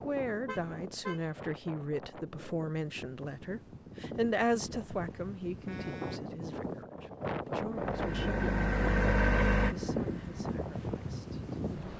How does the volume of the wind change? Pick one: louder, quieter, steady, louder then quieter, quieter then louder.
louder.